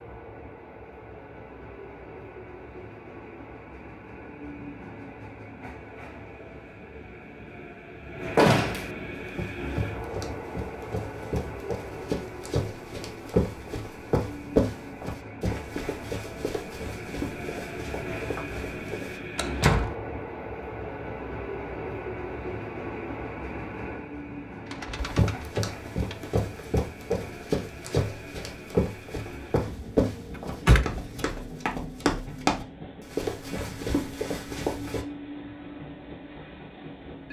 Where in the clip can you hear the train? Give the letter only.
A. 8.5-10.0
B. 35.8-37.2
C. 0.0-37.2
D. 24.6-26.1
C.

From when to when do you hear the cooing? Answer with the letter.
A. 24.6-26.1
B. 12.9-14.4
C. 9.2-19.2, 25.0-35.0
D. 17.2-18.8
A.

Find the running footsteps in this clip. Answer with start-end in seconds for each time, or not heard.
9.2-19.2, 25.0-35.0.